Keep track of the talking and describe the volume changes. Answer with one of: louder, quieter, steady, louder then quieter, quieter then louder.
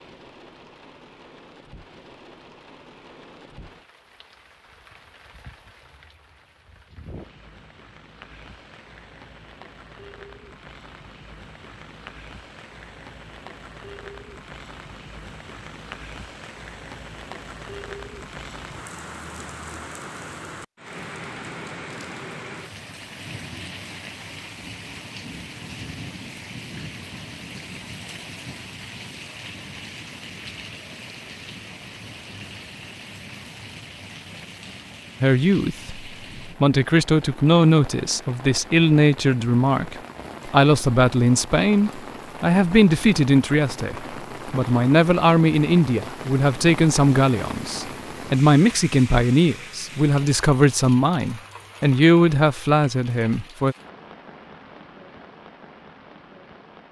steady.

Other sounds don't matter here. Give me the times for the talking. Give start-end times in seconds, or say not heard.
35.2-53.8.